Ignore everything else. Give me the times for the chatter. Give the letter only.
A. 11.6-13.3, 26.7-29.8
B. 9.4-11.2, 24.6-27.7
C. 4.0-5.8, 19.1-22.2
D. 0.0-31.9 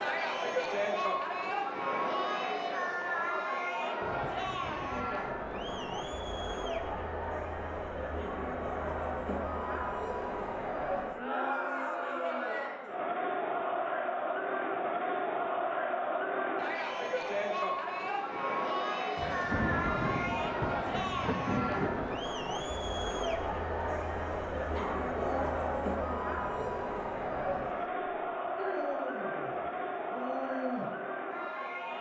D.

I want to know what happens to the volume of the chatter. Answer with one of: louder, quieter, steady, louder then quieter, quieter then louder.
steady.